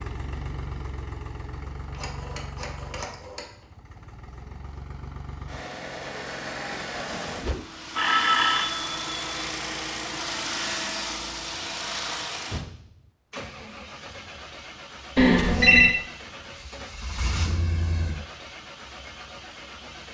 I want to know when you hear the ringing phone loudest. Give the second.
16 s.